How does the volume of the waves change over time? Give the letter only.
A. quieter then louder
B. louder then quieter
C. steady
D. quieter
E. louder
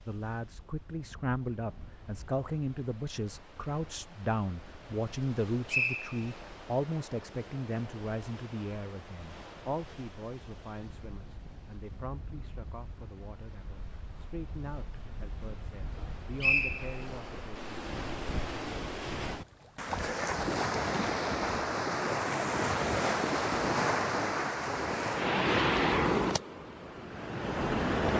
E.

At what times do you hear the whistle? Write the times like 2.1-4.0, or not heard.
5.7-6.5, 16.4-17.1.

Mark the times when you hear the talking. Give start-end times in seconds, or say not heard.
0.1-17.7.